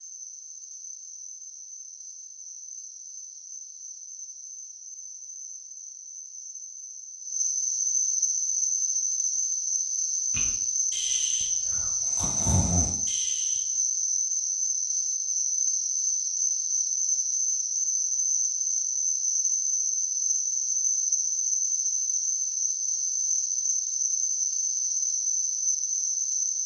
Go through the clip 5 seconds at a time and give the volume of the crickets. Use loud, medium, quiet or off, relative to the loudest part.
quiet, loud, loud, loud, loud, loud.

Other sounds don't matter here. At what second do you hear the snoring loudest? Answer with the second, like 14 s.
13 s.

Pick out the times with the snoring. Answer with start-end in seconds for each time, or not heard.
10.3-13.7.